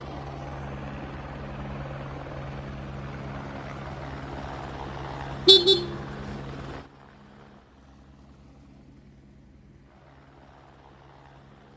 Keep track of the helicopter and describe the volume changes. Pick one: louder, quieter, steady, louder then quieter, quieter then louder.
quieter.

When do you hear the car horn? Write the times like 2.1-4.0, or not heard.
5.5-6.3.